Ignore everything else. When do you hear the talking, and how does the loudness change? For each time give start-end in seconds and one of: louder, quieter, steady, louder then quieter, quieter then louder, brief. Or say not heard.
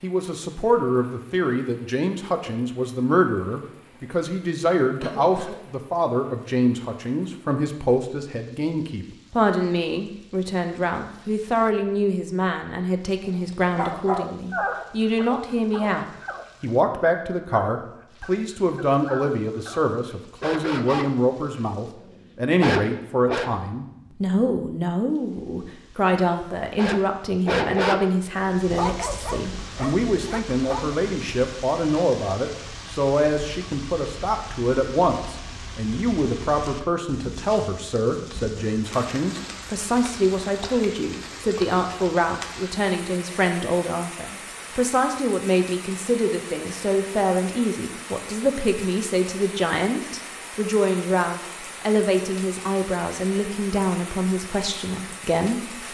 0.0-55.8 steady.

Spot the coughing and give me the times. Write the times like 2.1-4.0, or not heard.
5.0-5.6.